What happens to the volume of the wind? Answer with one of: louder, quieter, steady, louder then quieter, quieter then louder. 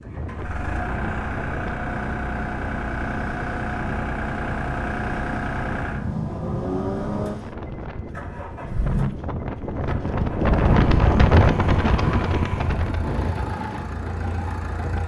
louder then quieter.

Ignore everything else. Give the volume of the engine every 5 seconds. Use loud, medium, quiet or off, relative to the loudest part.
loud, loud, medium.